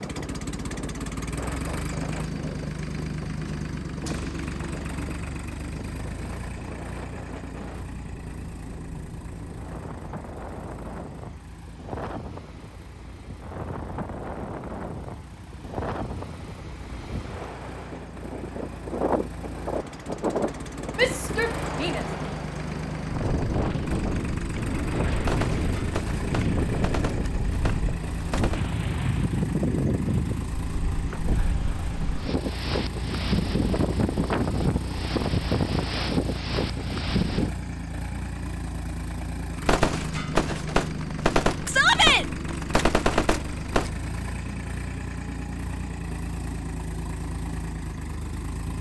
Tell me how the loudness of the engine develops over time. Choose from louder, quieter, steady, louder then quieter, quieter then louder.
quieter then louder.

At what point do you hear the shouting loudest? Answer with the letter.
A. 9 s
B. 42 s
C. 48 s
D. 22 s
B.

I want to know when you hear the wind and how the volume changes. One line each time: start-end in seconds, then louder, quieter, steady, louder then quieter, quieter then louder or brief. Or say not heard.
0.0-37.5 louder.